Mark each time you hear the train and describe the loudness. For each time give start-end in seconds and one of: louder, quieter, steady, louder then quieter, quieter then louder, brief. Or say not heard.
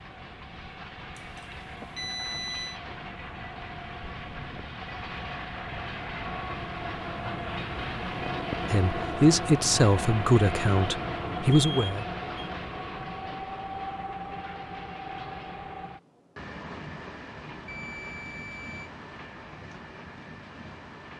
0.0-21.1 louder then quieter.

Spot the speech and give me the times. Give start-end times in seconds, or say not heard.
8.7-12.1.